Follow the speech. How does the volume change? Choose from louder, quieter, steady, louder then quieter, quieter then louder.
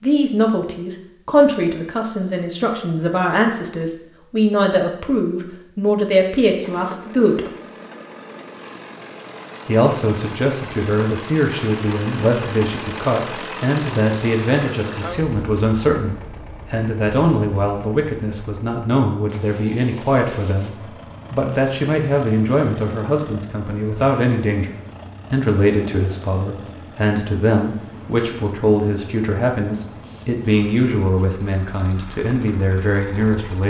steady.